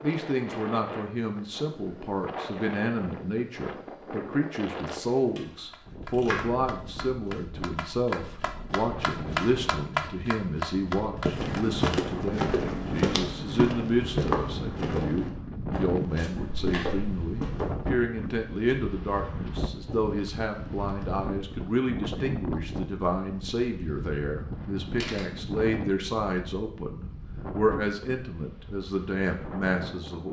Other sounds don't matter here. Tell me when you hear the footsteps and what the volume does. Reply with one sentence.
The footsteps can be heard from 11.2 to 17.8 s, getting quieter.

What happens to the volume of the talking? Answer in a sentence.
The loudness of the talking stays about the same.